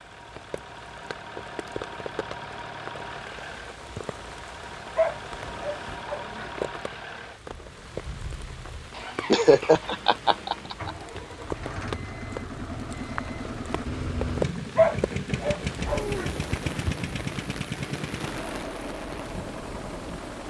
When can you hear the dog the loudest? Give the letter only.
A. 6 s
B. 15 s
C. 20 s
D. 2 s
B.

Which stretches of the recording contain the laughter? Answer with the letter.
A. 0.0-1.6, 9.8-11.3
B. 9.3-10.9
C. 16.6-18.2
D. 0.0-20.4
B.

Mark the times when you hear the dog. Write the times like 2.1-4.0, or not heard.
5.0-6.5, 14.8-16.3.